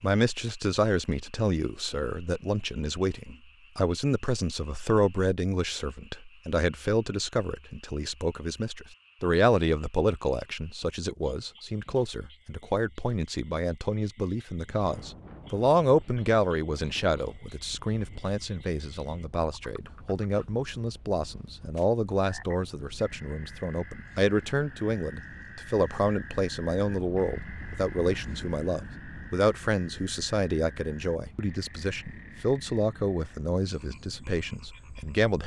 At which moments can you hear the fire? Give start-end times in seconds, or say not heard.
not heard.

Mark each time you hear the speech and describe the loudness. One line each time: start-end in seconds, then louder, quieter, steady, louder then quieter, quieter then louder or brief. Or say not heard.
0.0-35.4 steady.